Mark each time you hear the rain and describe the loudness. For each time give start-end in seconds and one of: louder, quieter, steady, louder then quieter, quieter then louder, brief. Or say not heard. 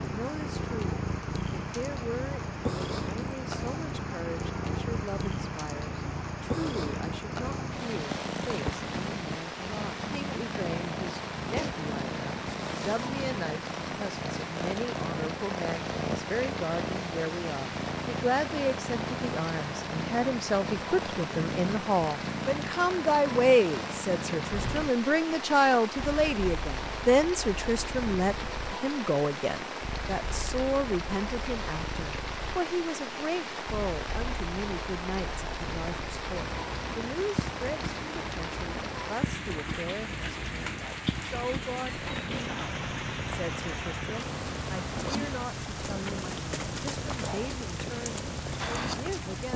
0.0-49.5 steady.